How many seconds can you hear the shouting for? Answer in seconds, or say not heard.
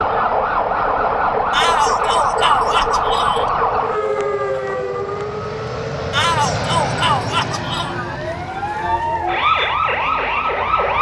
4 s.